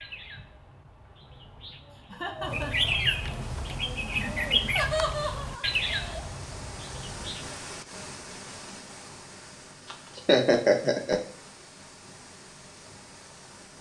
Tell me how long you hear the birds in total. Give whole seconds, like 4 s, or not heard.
8 s.